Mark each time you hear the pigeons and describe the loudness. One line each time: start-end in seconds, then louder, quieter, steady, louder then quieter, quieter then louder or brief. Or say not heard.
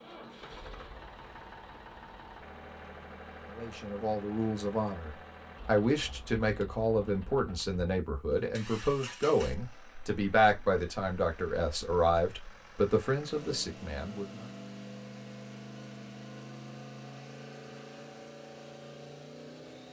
not heard.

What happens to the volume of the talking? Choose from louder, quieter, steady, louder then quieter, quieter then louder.
steady.